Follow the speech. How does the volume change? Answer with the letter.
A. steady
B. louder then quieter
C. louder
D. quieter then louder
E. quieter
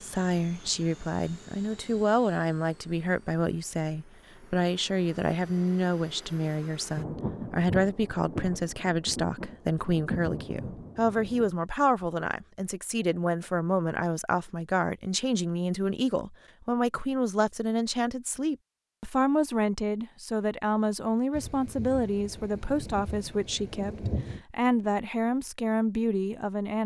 A.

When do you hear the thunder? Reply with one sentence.
The thunder can be heard from 7.0 to 11.5 s and from 21.3 to 24.4 s.